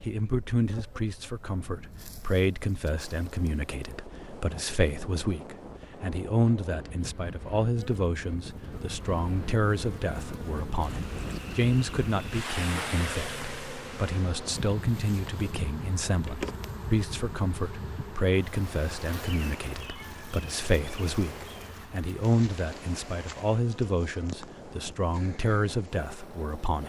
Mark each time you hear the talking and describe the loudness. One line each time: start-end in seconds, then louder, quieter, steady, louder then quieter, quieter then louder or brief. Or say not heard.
0.0-26.8 steady.